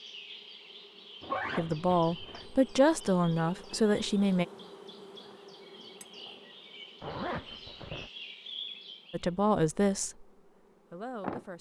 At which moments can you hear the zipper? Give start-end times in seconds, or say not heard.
1.2-2.5, 7.0-8.1.